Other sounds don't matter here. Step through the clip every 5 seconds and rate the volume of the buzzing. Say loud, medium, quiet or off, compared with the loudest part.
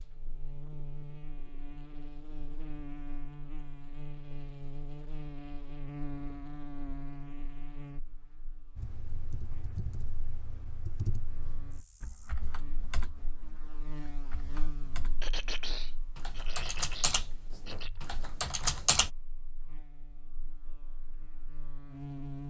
loud, loud, medium, quiet, loud.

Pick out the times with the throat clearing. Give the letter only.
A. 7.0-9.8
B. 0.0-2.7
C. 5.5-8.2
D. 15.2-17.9
D.